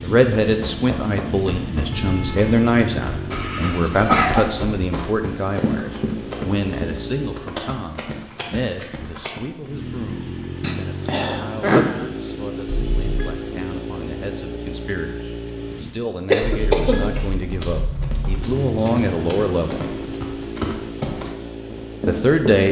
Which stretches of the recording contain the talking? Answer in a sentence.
You can hear the talking from 0.0 to 19.8 s and from 22.1 to 22.6 s.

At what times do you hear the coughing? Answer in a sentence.
You can hear the coughing from 3.3 to 4.5 s, from 10.6 to 11.8 s and from 16.3 to 17.3 s.